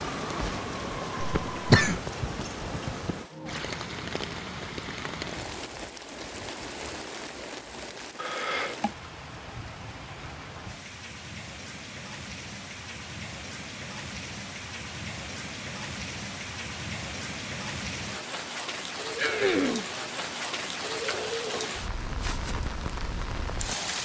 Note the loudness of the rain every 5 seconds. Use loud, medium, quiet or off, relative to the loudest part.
loud, medium, medium, loud, loud.